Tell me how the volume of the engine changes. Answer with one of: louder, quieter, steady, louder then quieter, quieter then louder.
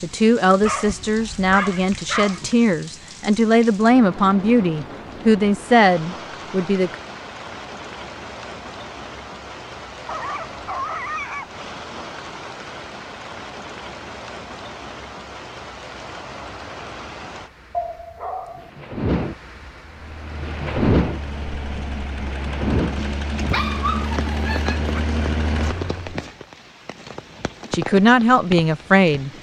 louder.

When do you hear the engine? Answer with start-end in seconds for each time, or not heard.
19.9-26.2.